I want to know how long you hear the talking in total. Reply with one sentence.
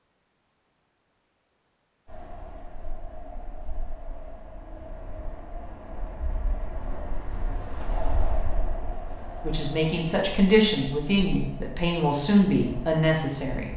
You can hear the talking for 4 seconds altogether.